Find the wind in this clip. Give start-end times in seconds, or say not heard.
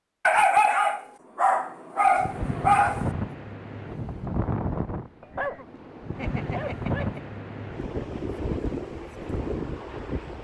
2.0-10.3.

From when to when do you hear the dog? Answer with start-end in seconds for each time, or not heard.
0.2-3.1, 5.2-7.2.